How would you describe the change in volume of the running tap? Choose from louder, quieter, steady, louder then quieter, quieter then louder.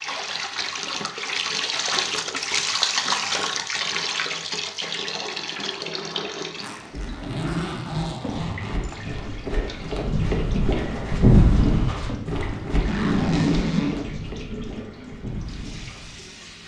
quieter.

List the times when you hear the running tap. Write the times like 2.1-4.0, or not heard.
0.0-16.6.